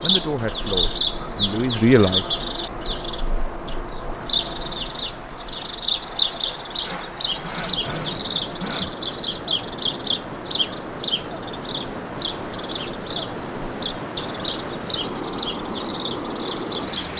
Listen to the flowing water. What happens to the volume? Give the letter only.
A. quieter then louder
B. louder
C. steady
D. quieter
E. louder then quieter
B.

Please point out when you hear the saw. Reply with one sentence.
You can hear the saw from 6.8 to 9.0 s.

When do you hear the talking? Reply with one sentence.
You can hear the talking from 0.0 to 2.2 s.